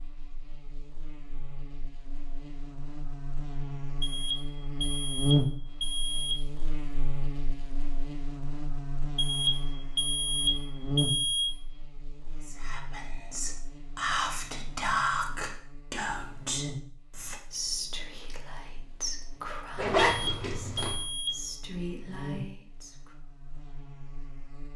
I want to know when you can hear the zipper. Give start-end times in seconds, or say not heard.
19.8-21.0.